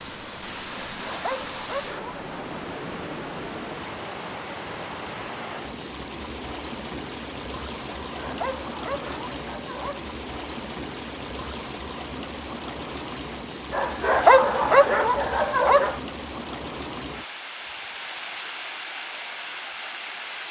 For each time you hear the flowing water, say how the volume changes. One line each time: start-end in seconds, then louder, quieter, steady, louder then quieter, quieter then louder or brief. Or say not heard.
0.0-20.4 steady.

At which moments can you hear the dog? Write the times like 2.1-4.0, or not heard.
0.8-2.2, 7.8-10.1, 13.7-16.0.